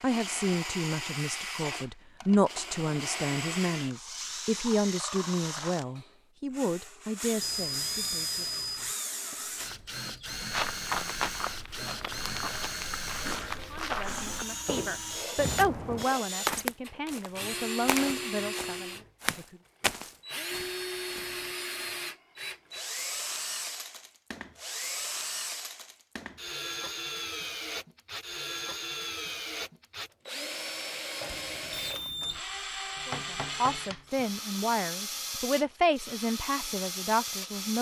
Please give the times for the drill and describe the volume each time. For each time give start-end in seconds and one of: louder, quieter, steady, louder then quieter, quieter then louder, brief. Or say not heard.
0.0-37.7 steady.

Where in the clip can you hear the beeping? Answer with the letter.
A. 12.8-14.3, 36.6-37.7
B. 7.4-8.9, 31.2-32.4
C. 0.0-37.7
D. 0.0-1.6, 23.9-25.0
B.